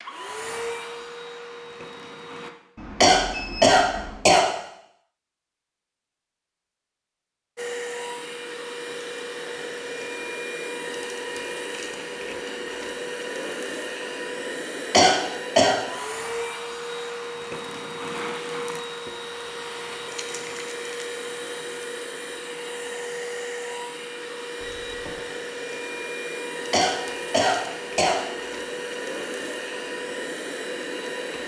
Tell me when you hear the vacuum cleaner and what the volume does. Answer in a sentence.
You can hear the vacuum cleaner briefly from 0.0 to 2.5 s; and from 7.5 to 31.4 s, at a steady volume.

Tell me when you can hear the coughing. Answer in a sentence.
The coughing can be heard from 3.0 to 4.5 s, from 14.9 to 15.8 s and from 26.7 to 28.2 s.